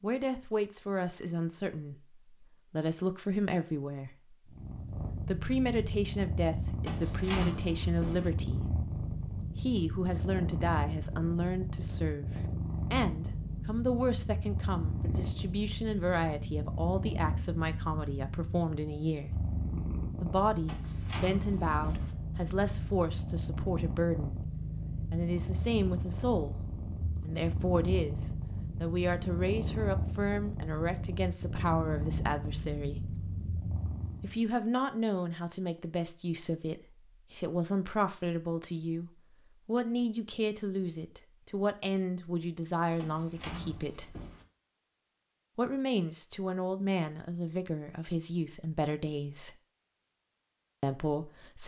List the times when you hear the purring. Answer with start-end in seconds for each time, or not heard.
4.5-34.4.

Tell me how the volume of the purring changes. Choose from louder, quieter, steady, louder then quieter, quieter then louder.
steady.